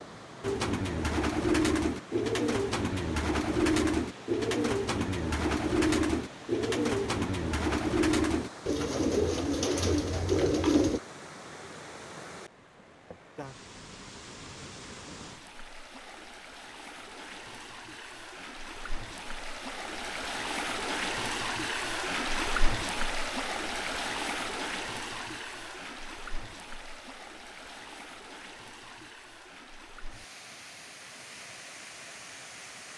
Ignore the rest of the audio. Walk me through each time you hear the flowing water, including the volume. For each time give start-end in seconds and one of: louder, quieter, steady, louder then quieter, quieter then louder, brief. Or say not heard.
0.0-32.9 louder then quieter.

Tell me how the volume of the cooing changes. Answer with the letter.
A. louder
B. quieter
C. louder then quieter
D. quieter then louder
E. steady
E.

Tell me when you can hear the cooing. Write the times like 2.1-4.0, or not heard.
0.4-11.0.